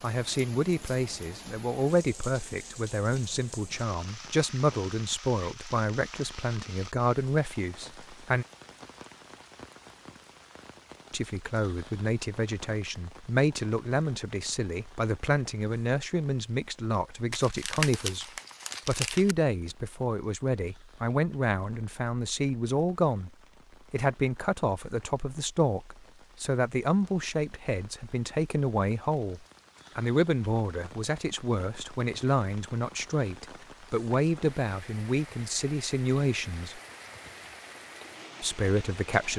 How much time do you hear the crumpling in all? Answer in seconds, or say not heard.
2 s.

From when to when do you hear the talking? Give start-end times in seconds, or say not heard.
0.0-8.4, 11.1-18.2, 18.9-23.3, 23.9-36.8, 38.4-39.3.